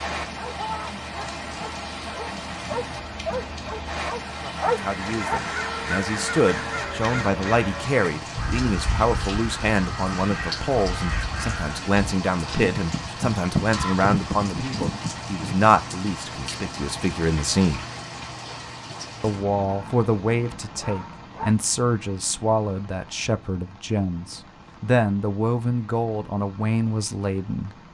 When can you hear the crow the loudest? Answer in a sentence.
The volume of the crow peaks at 14 seconds.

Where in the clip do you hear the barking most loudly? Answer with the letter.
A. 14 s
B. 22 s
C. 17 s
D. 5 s
D.